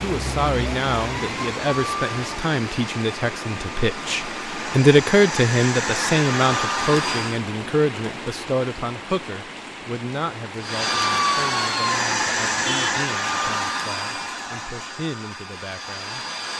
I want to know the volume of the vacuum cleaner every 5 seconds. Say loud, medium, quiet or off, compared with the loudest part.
medium, loud, loud, medium.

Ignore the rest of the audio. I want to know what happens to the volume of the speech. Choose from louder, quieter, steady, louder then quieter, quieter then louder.
louder then quieter.